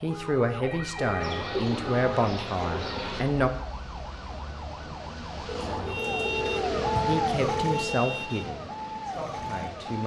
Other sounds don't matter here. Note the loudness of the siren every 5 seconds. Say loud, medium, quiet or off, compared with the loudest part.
medium, loud.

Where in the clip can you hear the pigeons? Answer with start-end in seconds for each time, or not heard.
1.2-3.2, 5.5-7.2.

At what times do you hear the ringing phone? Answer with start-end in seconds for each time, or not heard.
0.6-1.5, 5.5-7.9.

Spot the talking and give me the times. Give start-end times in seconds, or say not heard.
0.0-3.5, 7.0-10.0.